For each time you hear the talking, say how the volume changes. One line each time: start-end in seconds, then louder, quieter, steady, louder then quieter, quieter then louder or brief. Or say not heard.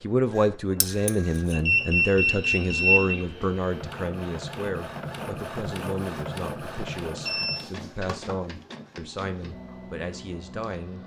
0.0-11.0 quieter.